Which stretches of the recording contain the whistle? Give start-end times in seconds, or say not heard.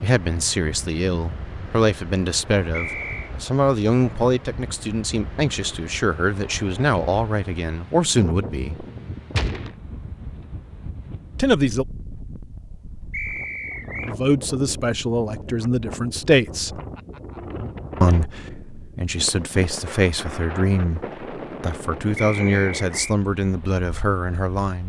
2.7-3.3, 13.1-14.2, 22.1-23.1.